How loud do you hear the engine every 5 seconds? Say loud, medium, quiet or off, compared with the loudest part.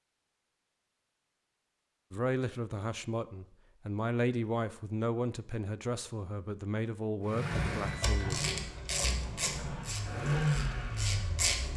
off, medium, loud.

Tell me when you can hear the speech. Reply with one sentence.
The speech can be heard from 2.1 to 8.5 s.